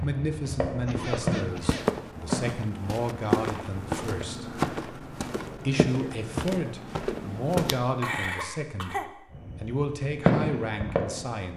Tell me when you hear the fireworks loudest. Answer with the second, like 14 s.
10 s.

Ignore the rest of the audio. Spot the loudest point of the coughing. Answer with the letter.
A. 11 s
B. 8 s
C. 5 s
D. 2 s
B.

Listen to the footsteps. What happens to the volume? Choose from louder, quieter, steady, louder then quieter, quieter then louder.
steady.